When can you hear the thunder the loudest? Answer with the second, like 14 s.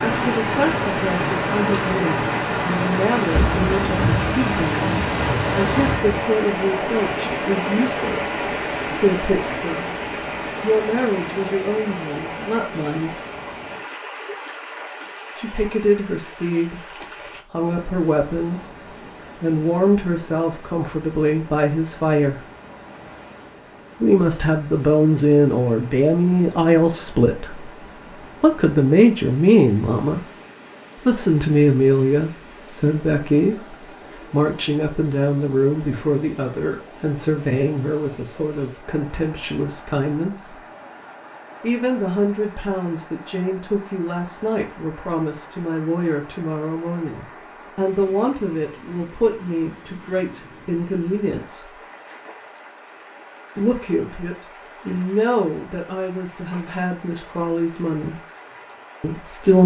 4 s.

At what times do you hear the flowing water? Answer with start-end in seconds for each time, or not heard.
0.0-59.6.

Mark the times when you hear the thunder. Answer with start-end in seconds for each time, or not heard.
3.3-6.2.